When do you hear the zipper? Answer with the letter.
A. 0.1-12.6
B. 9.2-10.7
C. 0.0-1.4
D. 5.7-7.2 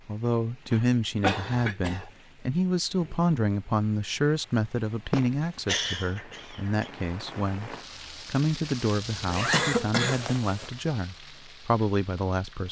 B.